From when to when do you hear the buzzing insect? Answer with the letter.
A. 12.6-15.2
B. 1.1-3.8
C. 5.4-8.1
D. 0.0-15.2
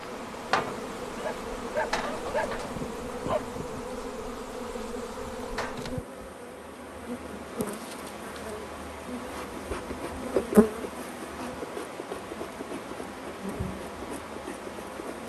D.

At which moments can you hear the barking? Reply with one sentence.
You can hear the barking from 1.1 to 3.8 s.